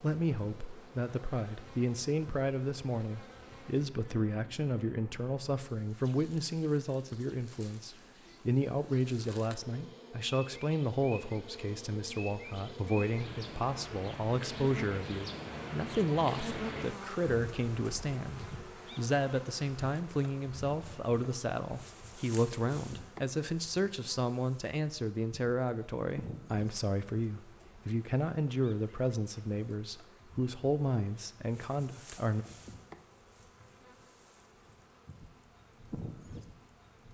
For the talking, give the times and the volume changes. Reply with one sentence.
The talking can be heard from 0.0 to 32.5 s, at a steady volume.